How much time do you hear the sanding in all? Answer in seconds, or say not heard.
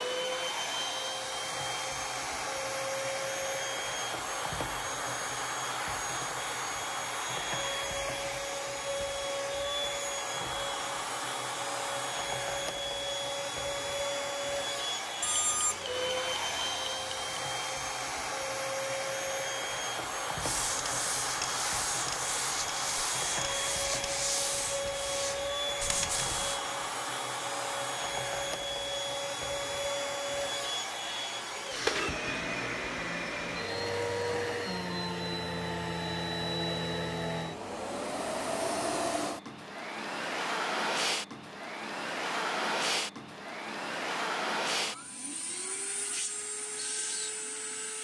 6 s.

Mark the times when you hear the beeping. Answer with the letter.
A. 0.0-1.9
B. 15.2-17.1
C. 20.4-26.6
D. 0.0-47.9
B.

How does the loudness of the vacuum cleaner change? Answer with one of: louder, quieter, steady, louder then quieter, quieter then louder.
steady.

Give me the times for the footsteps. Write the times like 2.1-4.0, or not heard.
not heard.